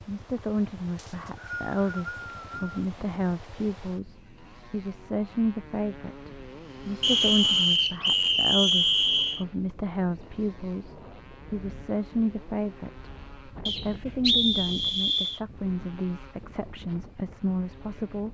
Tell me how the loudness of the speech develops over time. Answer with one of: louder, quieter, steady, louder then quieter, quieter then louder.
steady.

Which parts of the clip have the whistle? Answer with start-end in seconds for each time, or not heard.
0.9-2.8, 7.0-9.4, 13.7-15.4.